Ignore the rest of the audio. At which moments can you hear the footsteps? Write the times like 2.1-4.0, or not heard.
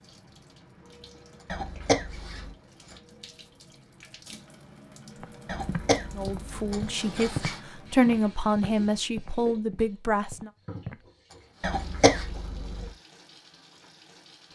5.2-11.1.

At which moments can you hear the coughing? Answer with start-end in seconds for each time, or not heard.
1.4-2.5, 5.5-6.7, 11.6-12.9.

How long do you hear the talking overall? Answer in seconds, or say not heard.
4 s.